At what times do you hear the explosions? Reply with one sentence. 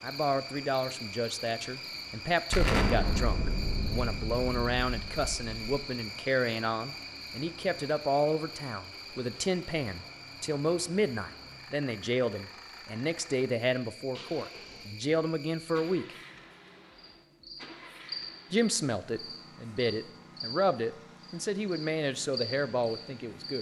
You can hear the explosions from 2.5 to 5.5 s.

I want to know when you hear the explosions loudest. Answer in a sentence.
The loudest moment of the explosions is at 3 seconds.